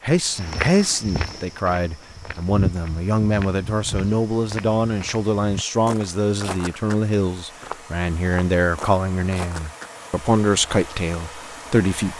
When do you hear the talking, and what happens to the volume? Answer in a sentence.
The talking can be heard from 0.0 to 12.1 s, at a steady volume.